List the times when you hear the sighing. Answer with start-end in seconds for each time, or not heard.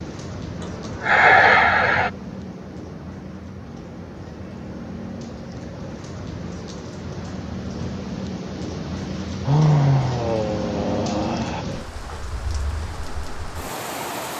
0.6-2.1, 9.4-11.7.